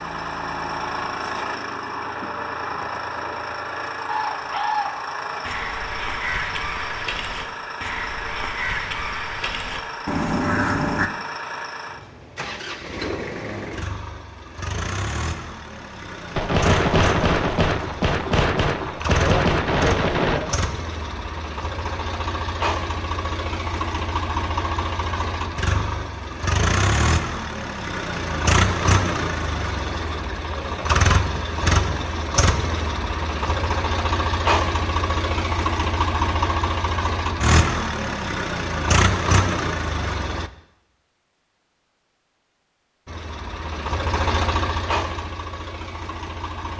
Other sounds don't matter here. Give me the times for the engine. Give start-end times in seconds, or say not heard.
0.0-40.5, 43.0-46.7.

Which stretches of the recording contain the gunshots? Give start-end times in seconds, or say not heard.
16.4-20.6.